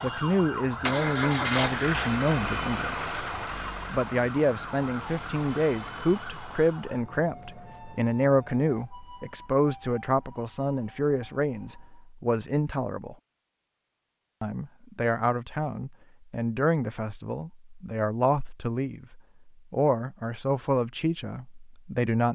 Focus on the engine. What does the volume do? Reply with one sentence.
The volume of the engine goes down.